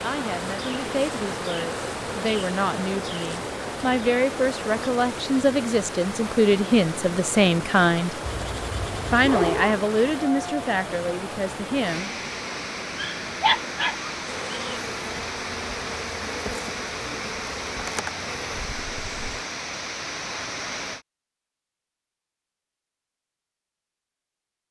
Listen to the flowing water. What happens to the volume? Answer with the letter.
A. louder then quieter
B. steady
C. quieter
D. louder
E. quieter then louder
B.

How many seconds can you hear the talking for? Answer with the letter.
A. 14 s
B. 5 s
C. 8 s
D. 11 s
D.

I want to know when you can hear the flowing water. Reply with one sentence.
You can hear the flowing water from 0.0 to 21.1 s.